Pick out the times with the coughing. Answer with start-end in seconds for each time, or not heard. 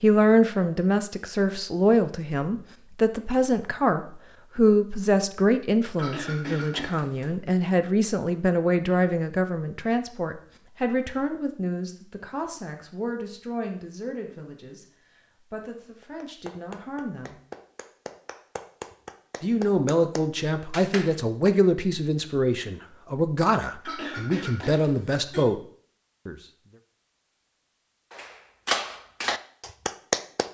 6.0-7.3, 23.9-25.4.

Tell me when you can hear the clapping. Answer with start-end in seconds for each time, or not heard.
16.0-21.6, 28.1-30.4.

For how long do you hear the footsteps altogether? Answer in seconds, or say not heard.
not heard.